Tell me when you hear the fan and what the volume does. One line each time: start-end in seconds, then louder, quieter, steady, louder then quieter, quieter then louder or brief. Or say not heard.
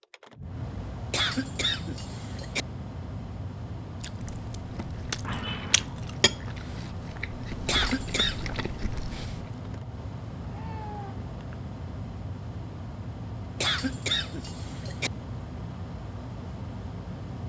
0.0-17.4 steady.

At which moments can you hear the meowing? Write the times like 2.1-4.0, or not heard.
5.2-5.9, 10.4-11.6.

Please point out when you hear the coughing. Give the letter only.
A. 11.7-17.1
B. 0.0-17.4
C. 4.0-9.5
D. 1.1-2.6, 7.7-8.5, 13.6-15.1
D.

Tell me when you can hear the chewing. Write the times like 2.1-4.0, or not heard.
4.0-9.5.